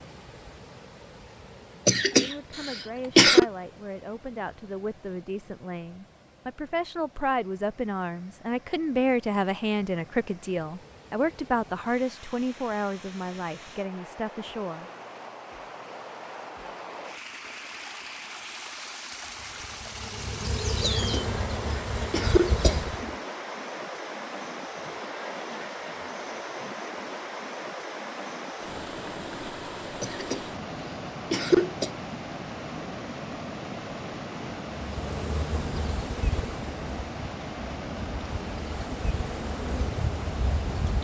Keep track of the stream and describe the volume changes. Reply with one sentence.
The volume of the stream goes up.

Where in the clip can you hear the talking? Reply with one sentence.
The talking can be heard from 2.2 to 14.9 s.